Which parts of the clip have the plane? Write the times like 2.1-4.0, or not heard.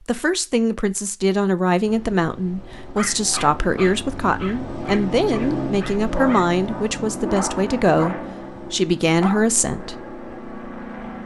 1.8-11.2.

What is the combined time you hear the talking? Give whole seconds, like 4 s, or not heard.
10 s.